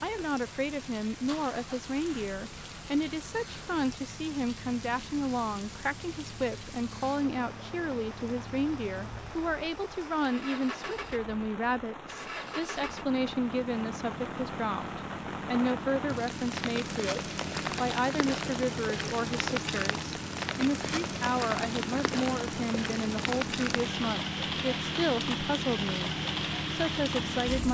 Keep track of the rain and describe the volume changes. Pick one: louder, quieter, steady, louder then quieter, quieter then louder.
louder.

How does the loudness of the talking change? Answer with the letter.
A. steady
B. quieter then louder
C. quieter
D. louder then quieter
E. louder
A.